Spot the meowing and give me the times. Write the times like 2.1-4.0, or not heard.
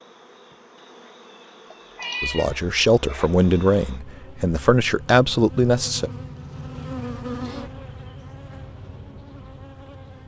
1.7-3.3.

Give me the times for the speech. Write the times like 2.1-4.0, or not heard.
2.2-6.1.